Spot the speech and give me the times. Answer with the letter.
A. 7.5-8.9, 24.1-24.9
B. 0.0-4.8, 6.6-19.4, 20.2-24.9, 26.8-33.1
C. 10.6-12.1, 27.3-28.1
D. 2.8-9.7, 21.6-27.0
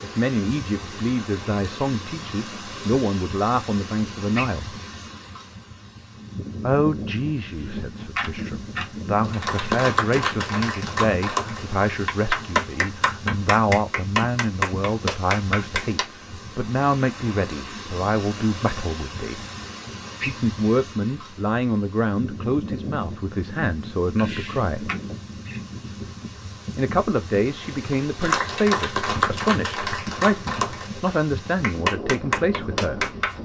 B.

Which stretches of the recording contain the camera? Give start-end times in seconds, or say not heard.
7.5-8.9, 24.1-24.9.